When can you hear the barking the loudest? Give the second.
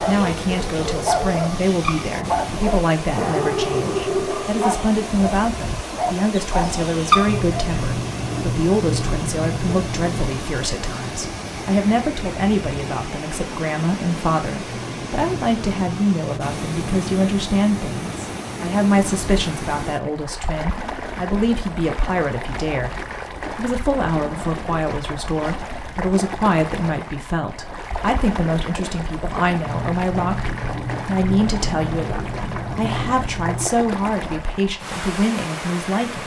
7 s.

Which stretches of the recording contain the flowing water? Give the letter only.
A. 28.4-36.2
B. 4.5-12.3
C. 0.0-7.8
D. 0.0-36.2
D.